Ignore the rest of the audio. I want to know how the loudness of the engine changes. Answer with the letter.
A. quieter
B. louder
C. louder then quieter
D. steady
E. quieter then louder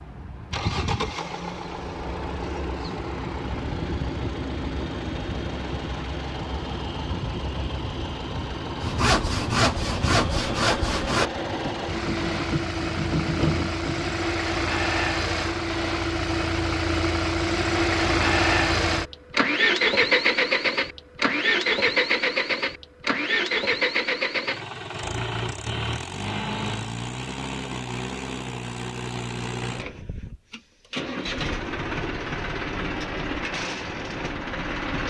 C.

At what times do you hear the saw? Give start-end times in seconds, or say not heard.
8.8-14.2.